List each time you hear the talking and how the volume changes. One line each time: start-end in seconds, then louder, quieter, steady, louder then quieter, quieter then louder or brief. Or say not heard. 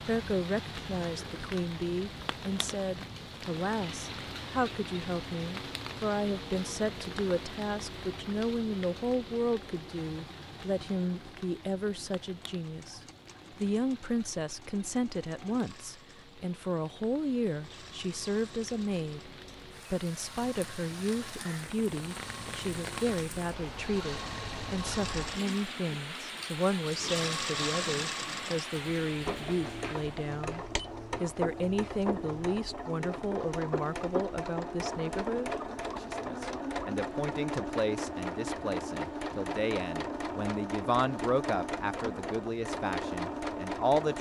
0.1-19.3 steady
19.9-44.1 steady.